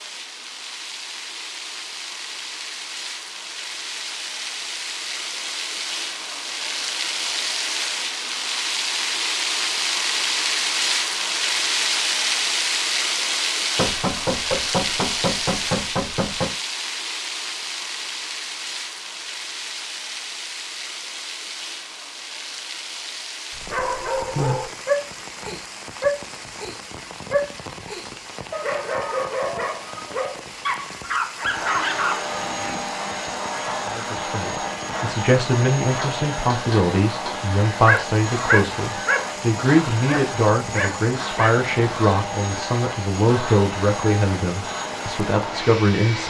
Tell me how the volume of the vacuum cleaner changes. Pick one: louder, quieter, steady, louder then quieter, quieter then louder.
steady.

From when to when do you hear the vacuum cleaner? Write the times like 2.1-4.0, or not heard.
31.4-46.2.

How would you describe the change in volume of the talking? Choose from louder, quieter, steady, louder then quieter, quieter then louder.
steady.